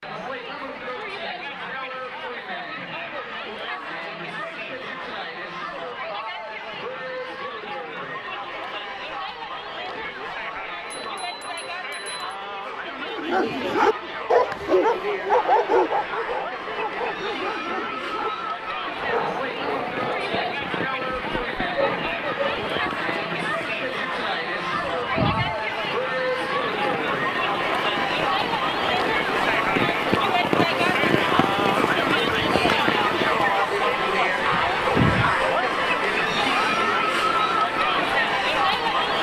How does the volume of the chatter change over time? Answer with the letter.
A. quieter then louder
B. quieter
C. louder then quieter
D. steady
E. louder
E.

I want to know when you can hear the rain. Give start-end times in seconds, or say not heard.
18.9-39.1.